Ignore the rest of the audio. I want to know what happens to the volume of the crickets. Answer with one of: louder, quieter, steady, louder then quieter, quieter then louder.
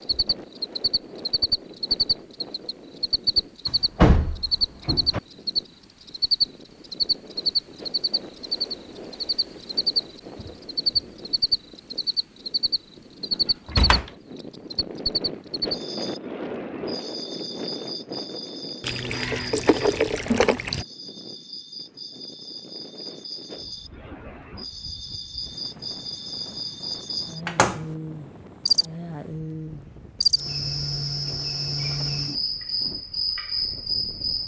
quieter then louder.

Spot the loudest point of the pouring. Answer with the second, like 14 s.
20 s.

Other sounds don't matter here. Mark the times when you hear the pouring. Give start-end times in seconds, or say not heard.
18.8-20.9.